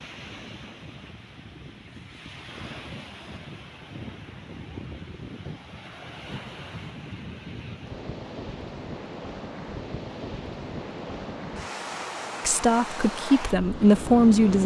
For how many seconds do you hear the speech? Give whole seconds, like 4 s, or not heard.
2 s.